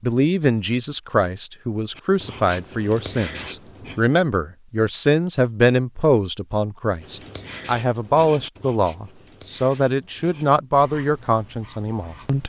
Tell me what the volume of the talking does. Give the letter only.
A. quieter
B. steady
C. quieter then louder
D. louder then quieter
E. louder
B.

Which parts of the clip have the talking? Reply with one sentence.
You can hear the talking from 0.0 to 12.4 s.